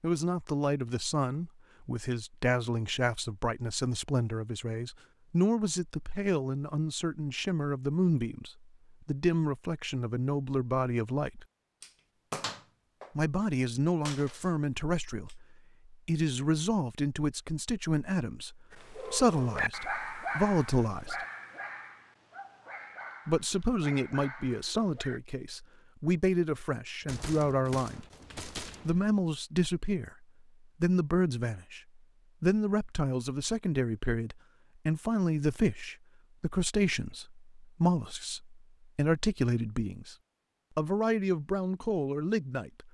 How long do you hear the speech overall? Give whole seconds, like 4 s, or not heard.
37 s.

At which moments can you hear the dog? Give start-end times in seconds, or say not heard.
18.7-25.2.